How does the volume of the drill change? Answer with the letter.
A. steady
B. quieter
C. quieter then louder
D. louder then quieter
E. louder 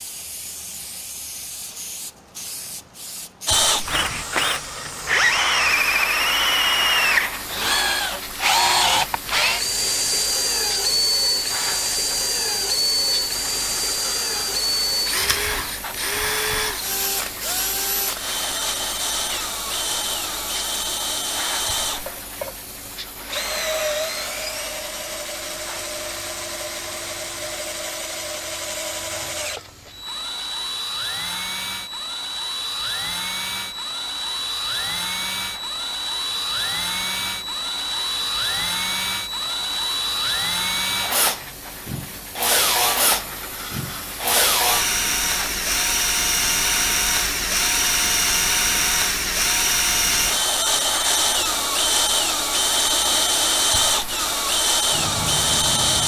C.